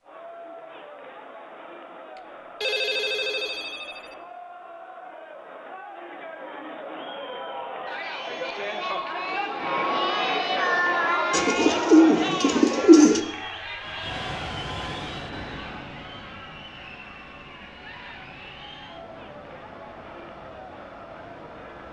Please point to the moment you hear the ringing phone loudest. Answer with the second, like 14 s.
3 s.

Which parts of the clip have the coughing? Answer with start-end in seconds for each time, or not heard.
not heard.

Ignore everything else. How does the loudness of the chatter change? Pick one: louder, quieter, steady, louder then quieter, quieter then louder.
louder then quieter.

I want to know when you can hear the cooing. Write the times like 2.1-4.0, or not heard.
11.3-13.2.